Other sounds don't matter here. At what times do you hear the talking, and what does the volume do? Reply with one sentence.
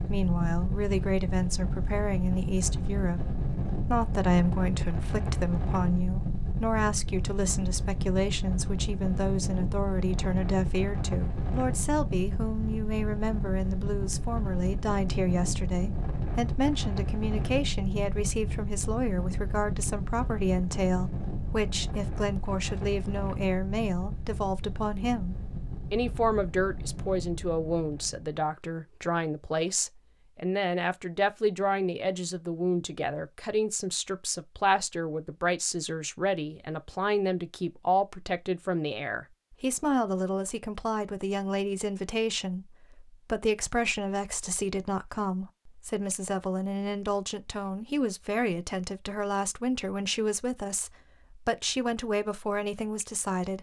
You can hear the talking from 0.0 to 53.5 s, at a steady volume.